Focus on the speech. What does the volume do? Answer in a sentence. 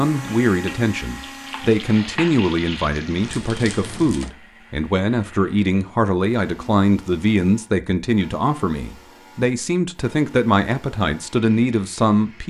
The volume of the speech stays about the same.